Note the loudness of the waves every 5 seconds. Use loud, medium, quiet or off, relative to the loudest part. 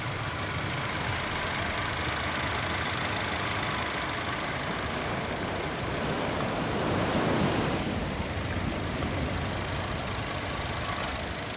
medium, loud, medium.